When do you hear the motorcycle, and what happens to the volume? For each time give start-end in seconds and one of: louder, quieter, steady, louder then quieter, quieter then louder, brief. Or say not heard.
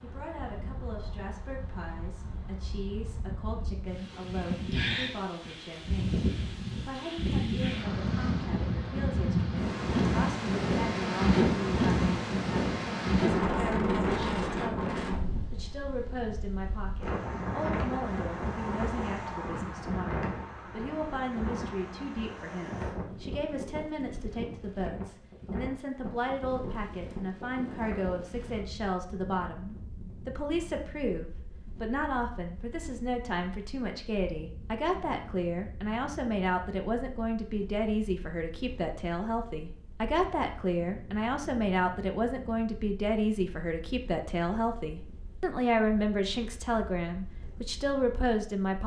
not heard.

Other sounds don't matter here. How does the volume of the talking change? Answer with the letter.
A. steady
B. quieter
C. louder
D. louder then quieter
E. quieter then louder
C.